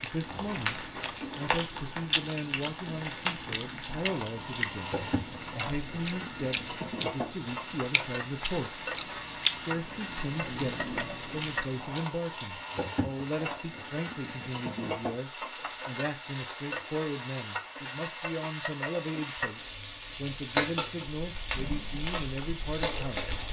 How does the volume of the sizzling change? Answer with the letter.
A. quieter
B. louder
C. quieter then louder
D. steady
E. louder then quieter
D.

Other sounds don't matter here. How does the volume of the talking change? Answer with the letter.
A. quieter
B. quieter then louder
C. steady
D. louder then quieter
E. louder
C.